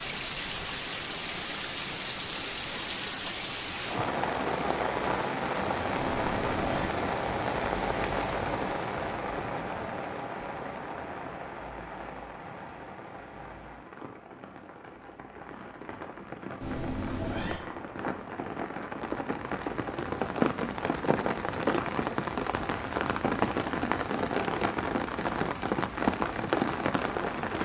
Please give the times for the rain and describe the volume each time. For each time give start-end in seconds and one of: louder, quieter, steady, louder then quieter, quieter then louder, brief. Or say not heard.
0.0-27.6 quieter then louder.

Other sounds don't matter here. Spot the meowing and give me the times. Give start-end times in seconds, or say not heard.
6.0-6.9, 16.6-17.6.